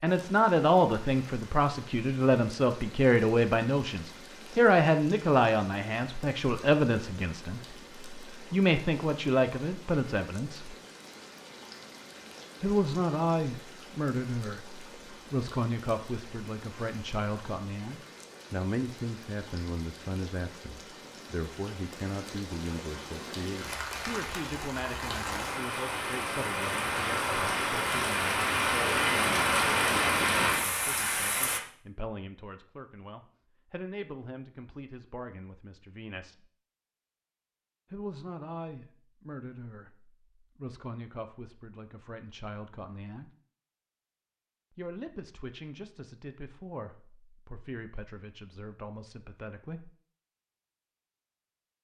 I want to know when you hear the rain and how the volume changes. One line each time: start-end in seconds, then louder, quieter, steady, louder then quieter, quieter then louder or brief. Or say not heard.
0.0-31.6 louder.